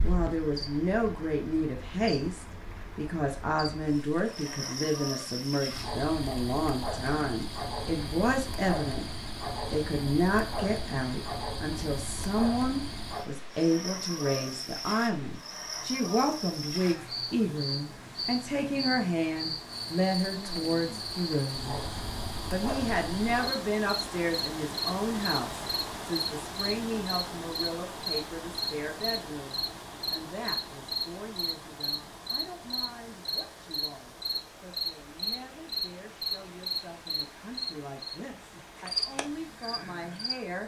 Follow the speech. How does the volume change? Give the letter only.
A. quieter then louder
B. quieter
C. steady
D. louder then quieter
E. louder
B.